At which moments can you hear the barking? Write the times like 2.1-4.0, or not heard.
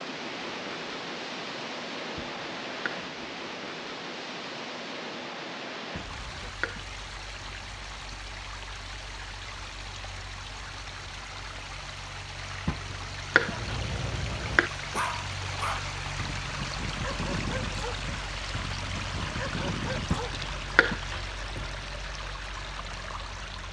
13.4-20.5.